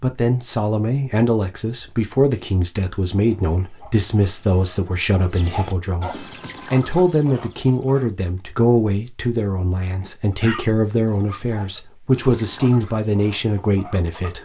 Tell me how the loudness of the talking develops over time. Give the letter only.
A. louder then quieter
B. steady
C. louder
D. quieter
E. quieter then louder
B.